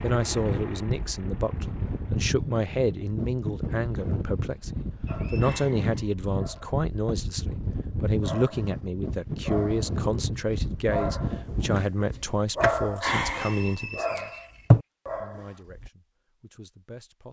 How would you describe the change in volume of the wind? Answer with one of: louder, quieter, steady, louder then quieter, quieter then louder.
steady.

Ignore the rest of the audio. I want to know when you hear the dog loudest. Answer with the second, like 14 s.
15 s.